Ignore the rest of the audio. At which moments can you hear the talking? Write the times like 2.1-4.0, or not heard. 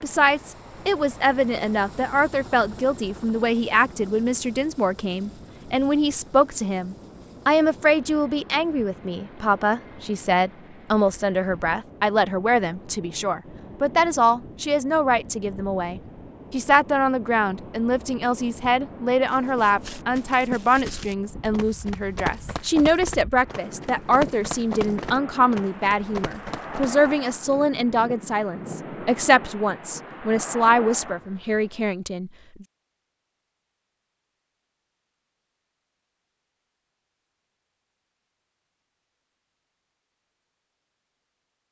0.0-32.6.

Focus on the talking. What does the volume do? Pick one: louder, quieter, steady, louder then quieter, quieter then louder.
steady.